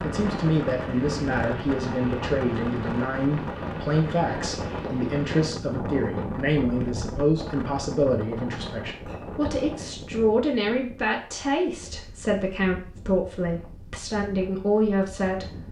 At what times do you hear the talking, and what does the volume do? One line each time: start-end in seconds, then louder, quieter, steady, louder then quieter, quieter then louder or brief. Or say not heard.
0.0-15.5 steady.